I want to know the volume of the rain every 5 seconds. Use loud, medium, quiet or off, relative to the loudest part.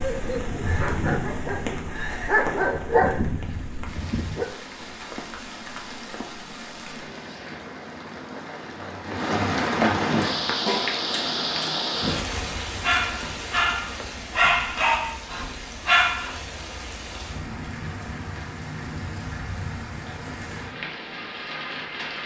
medium, loud, loud, medium, medium.